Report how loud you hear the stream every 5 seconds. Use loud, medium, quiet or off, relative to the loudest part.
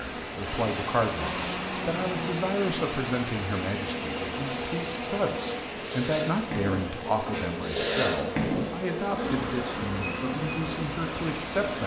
loud, medium, loud.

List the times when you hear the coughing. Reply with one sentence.
You can't hear the coughing here.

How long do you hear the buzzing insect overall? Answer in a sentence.
You can hear the buzzing insect for 12 seconds altogether.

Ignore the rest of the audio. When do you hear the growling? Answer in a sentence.
The growling can be heard from 1.2 to 2.4 s.